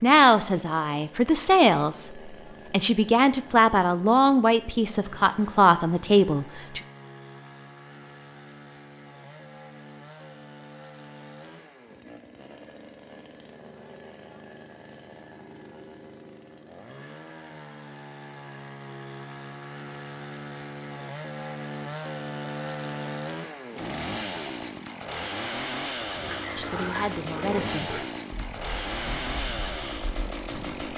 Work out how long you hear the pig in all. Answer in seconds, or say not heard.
5 s.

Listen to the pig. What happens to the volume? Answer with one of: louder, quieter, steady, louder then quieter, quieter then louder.
quieter.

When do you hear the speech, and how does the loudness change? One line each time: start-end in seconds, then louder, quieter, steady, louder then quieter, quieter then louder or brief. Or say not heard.
0.0-6.8 steady
26.6-28.0 brief.